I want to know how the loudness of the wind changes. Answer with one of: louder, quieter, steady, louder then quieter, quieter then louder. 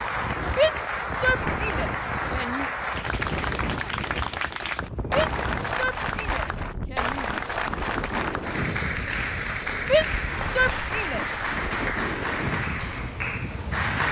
steady.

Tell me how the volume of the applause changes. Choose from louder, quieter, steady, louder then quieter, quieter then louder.
steady.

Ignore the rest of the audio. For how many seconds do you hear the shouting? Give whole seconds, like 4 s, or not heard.
6 s.